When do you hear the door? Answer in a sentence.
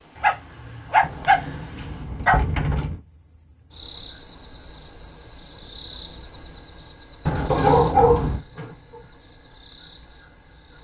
The door can be heard from 1.0 to 3.0 s and from 7.2 to 8.4 s.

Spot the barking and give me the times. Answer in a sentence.
The barking can be heard from 0.1 to 2.4 s and from 7.5 to 8.8 s.